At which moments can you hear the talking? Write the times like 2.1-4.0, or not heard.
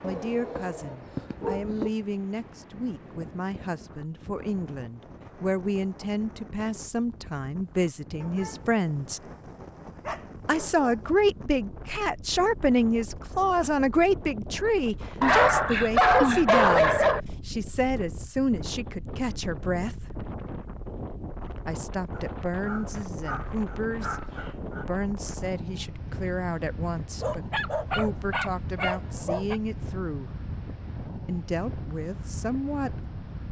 0.0-9.2, 10.4-20.1, 21.6-30.4, 31.2-33.4.